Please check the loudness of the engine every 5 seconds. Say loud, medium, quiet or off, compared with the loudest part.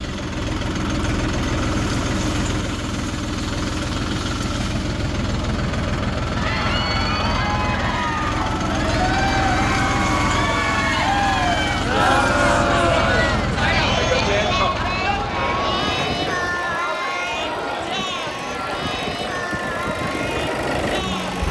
loud, loud, loud, medium, loud.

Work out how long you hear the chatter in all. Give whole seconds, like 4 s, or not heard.
15 s.